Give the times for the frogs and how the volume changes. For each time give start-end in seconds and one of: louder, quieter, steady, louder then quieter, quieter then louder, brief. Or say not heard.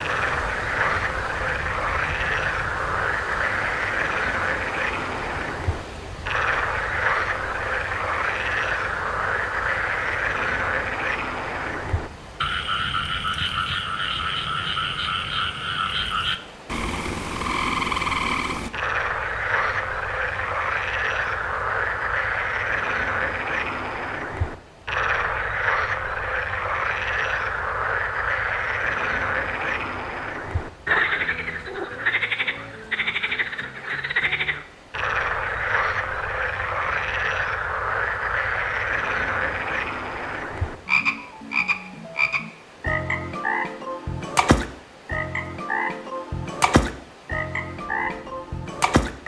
0.0-49.2 steady.